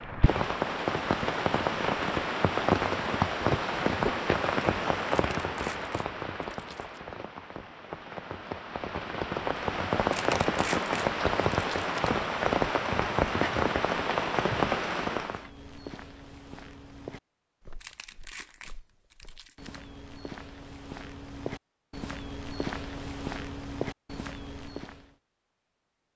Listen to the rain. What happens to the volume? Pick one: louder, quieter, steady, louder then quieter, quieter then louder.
quieter then louder.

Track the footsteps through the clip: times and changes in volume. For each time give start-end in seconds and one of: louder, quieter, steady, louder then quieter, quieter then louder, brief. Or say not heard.
15.2-25.1 quieter then louder.